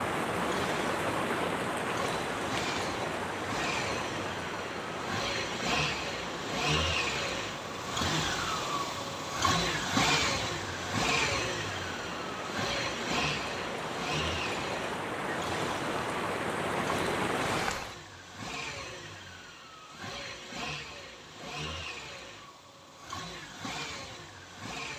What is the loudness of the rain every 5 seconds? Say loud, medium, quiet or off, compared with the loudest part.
loud, medium, medium, loud, off.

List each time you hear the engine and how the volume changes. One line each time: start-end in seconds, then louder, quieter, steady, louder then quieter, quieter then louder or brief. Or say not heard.
0.0-24.9 louder then quieter.